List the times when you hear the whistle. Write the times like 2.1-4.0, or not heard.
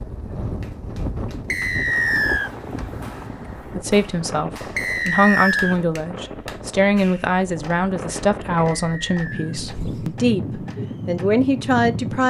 1.5-2.5, 4.8-5.8, 8.6-9.6.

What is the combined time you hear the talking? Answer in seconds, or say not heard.
9 s.